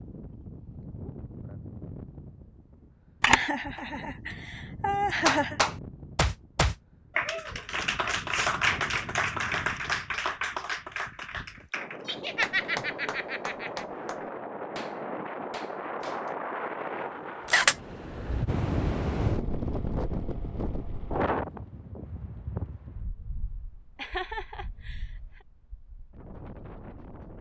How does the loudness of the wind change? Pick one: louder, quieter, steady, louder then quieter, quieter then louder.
louder then quieter.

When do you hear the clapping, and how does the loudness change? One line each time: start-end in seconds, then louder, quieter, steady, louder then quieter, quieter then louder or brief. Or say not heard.
5.2-16.3 quieter.